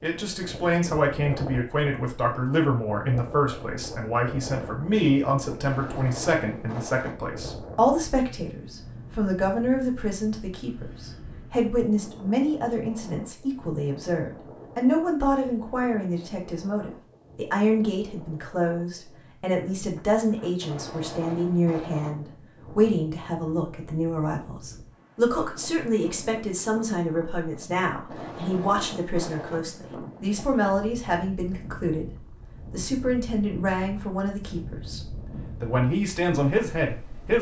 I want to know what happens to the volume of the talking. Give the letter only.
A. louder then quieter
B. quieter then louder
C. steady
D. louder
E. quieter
C.